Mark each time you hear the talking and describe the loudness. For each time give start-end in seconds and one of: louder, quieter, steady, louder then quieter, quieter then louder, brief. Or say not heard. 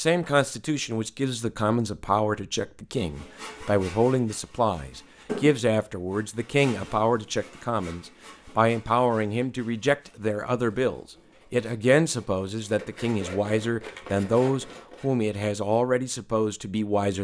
0.0-17.2 steady.